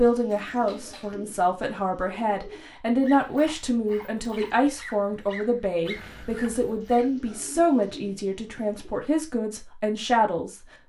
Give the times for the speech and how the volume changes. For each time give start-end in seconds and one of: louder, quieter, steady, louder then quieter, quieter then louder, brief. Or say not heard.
0.0-10.6 steady.